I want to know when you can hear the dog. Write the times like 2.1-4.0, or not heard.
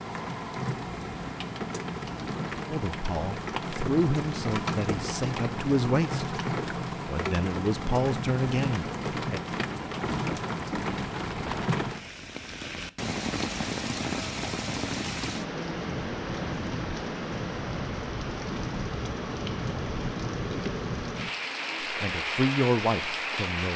not heard.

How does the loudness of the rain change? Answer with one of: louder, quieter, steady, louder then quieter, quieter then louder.
steady.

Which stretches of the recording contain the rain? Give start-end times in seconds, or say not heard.
0.0-23.7.